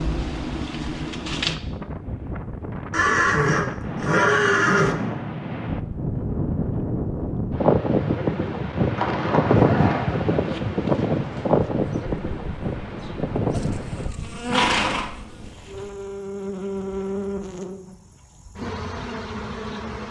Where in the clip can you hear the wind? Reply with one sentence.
You can hear the wind from 0.1 to 14.2 s.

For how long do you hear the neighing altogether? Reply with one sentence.
The neighing can be heard for 5 seconds in total.